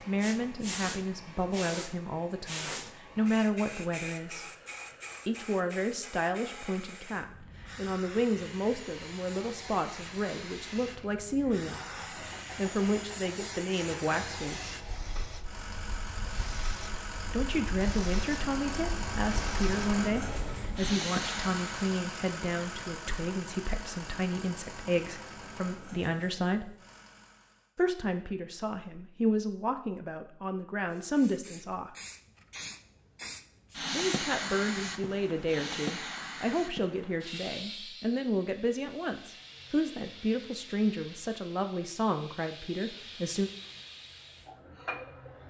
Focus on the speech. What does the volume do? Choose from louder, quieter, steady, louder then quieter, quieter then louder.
steady.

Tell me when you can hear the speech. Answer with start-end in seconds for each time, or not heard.
0.1-4.5, 5.2-14.8, 17.2-26.8, 27.8-31.9, 33.9-43.5.